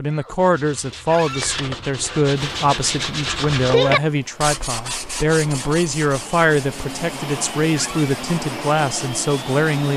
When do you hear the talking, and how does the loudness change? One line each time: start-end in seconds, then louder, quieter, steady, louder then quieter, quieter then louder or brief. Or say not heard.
0.0-9.9 steady.